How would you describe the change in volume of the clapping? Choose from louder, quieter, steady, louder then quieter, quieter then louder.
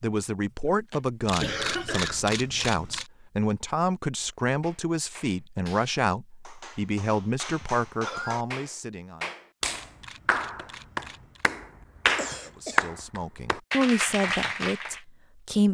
louder.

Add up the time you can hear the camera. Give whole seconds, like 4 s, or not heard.
4 s.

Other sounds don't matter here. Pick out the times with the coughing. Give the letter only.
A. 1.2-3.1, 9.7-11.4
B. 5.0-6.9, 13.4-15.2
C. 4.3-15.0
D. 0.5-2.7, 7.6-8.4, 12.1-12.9
D.